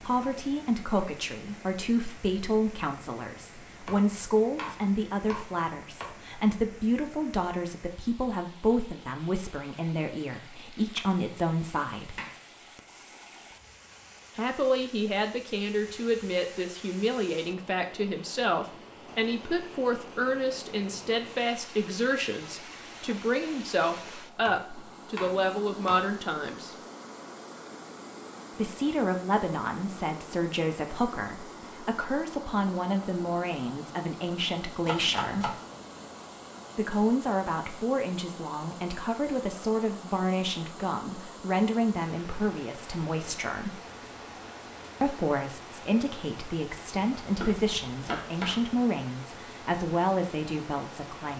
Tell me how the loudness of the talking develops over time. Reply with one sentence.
The loudness of the talking stays about the same.